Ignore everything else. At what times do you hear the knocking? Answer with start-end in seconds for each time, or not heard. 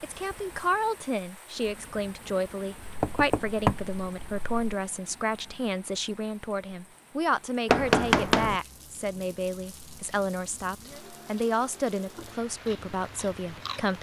2.9-4.8, 7.7-8.6.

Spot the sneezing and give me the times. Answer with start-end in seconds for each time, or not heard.
not heard.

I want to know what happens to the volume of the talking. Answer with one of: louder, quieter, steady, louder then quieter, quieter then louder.
steady.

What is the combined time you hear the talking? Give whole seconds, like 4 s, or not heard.
14 s.